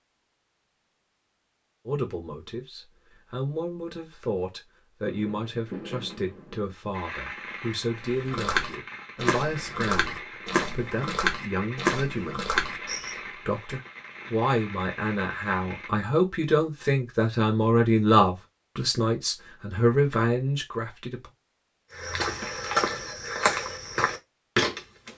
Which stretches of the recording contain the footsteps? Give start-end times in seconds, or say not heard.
8.0-13.2, 21.9-25.1.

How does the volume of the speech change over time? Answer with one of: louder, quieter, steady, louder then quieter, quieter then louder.
louder.